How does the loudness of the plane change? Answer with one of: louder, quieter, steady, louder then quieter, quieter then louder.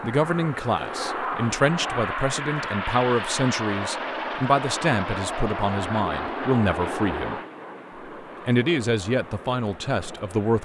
quieter.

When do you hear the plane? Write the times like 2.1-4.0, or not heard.
0.0-10.6.